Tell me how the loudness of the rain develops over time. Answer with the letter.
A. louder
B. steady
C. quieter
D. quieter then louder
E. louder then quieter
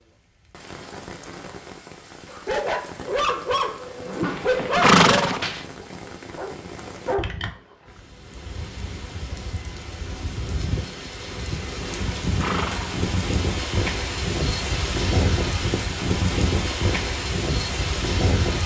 A.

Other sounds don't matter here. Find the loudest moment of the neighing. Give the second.
5 s.